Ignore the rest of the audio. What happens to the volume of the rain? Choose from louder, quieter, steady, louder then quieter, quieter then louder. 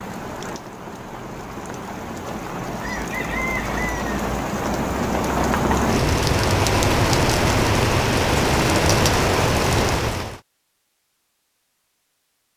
louder.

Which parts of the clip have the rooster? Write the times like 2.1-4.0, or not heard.
2.8-4.2.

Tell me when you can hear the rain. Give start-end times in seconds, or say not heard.
0.0-10.4.